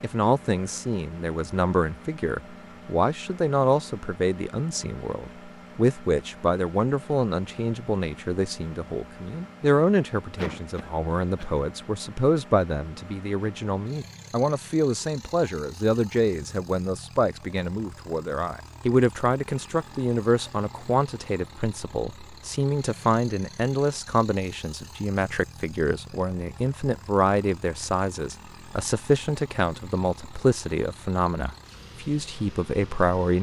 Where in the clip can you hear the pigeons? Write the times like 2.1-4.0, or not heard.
not heard.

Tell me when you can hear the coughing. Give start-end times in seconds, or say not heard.
10.3-11.7.